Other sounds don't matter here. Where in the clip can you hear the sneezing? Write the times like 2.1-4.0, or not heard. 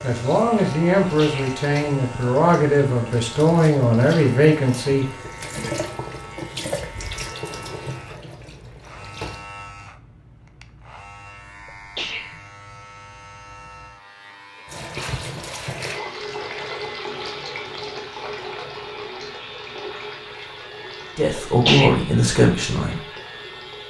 1.1-1.6, 11.7-12.4, 21.4-21.9.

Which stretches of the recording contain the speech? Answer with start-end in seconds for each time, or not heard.
0.0-5.0, 21.1-23.0.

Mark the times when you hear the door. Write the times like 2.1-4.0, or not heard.
not heard.